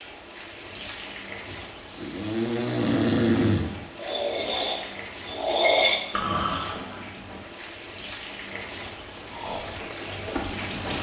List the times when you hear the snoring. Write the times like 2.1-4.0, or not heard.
1.4-7.0, 9.3-10.7.